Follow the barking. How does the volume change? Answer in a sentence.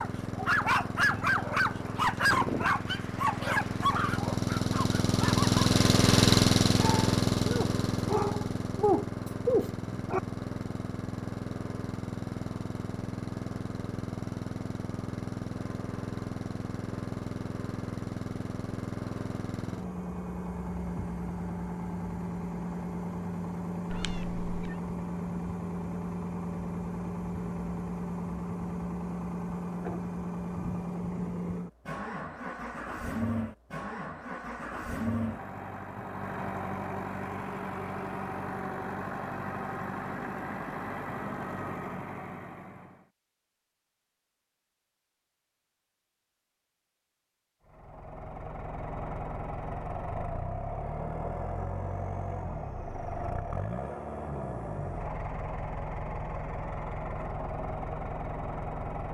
The volume of the barking goes down, then up.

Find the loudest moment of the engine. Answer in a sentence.
The volume of the engine peaks at 6 seconds.